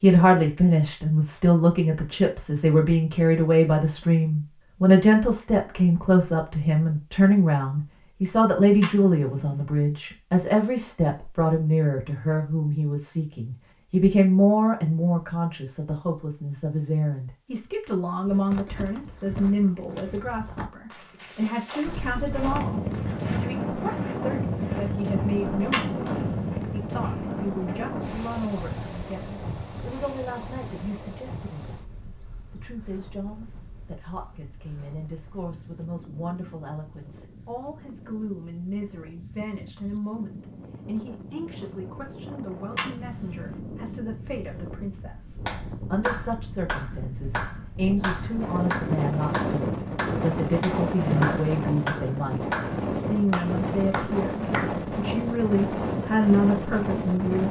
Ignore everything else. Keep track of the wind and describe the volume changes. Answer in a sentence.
The loudness of the wind goes down, then up.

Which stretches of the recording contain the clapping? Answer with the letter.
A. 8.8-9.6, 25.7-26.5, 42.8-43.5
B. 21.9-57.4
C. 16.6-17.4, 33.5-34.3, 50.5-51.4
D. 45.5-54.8
D.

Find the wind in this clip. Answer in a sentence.
The wind can be heard from 21.9 to 57.4 s.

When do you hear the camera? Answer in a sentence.
The camera can be heard from 8.8 to 9.6 s, from 25.7 to 26.5 s and from 42.8 to 43.5 s.